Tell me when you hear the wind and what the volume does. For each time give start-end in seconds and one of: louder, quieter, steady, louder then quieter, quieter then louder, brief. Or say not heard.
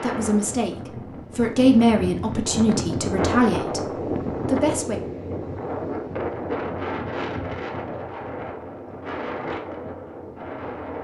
0.0-11.0 louder then quieter.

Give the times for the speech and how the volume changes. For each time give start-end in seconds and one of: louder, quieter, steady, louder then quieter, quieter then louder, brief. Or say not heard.
0.0-5.0 louder then quieter.